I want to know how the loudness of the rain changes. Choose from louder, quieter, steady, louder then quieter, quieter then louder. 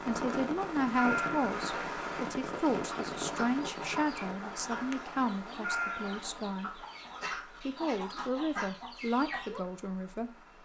quieter.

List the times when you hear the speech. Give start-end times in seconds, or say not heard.
0.1-6.8, 7.6-10.3.